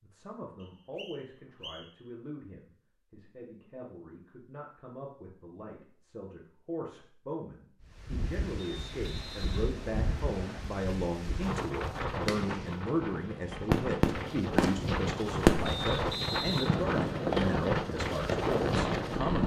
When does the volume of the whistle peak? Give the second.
16 s.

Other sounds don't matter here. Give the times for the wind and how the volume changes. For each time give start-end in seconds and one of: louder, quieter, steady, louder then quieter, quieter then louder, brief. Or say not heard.
7.8-19.4 louder.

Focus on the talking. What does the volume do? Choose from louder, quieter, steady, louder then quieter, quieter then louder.
louder.